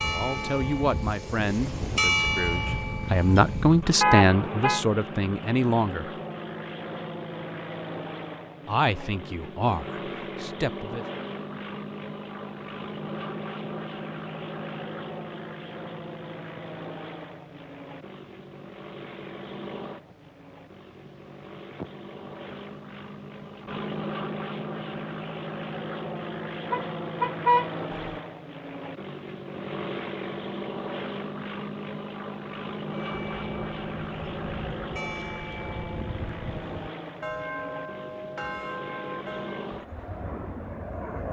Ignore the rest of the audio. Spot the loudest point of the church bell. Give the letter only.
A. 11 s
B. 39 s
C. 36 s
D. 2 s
D.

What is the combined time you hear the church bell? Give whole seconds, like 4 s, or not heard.
11 s.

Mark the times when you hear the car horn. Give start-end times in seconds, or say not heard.
4.0-4.8, 26.7-28.2.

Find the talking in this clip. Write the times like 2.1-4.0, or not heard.
0.0-6.1, 8.7-11.1.